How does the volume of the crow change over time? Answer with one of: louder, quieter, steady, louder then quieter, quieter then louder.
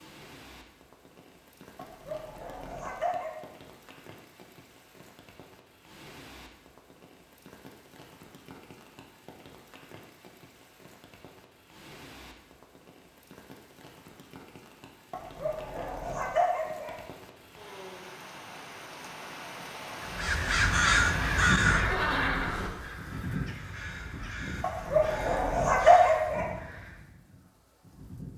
quieter.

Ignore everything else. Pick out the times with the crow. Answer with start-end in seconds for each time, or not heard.
20.0-27.1.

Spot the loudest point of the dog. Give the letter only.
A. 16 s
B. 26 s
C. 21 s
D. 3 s
B.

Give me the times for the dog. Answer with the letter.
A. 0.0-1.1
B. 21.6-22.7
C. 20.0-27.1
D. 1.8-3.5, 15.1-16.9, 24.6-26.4
D.